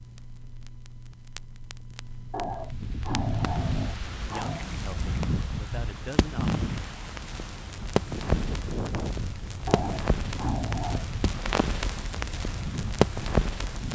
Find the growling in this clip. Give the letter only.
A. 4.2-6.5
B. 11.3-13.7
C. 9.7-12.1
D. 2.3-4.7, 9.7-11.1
D.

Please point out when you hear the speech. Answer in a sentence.
You can hear the speech from 4.2 to 6.5 s.